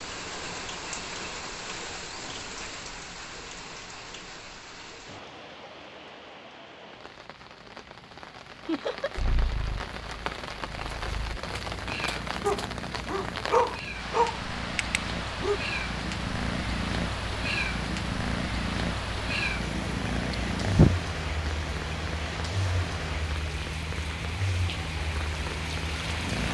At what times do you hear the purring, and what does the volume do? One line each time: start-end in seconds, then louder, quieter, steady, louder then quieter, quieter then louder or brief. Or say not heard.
9.2-26.4 louder then quieter.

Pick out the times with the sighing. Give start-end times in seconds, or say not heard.
20.3-20.9.